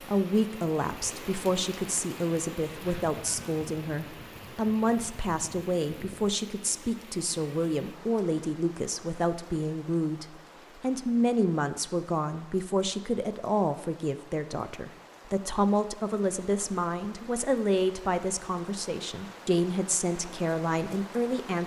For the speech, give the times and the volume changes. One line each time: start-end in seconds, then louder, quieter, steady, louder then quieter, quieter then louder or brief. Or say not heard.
0.0-21.6 steady.